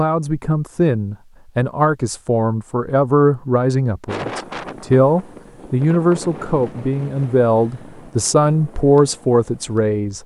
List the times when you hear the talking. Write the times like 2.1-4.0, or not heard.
0.0-10.2.